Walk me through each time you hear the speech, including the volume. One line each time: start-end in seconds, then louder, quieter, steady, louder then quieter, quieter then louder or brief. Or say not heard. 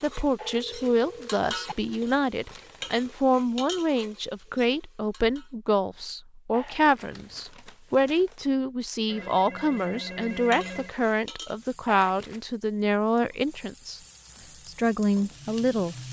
0.0-14.0 steady
14.7-16.0 brief.